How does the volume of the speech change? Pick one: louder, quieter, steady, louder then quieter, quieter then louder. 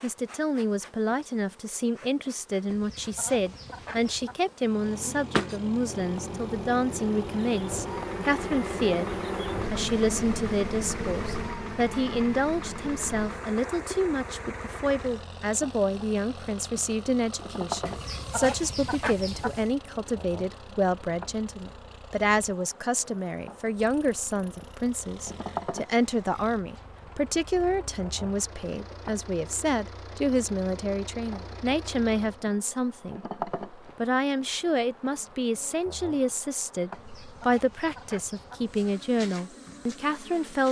steady.